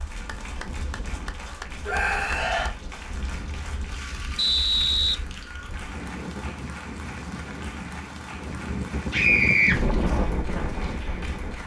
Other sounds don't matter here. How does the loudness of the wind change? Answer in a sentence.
The volume of the wind goes up.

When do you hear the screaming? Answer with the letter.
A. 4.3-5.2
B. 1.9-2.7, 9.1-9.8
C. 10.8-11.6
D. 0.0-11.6
B.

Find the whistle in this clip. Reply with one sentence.
The whistle can be heard from 4.3 to 5.2 s.